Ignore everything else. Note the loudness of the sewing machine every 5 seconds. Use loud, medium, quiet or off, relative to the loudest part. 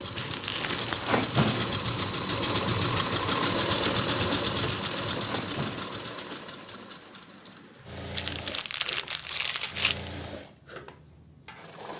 loud, medium, quiet.